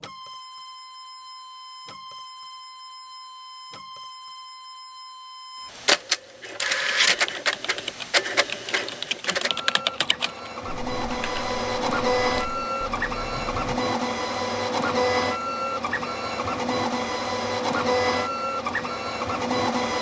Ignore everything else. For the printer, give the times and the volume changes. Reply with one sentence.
You can hear the printer from 0.0 to 19.9 s, getting louder.